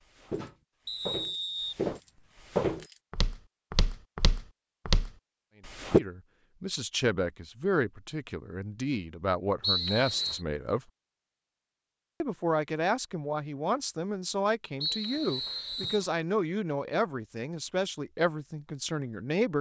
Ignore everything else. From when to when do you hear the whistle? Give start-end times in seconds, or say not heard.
0.8-2.2, 9.6-10.4, 14.8-16.1.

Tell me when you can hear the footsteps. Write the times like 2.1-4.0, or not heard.
0.1-6.0.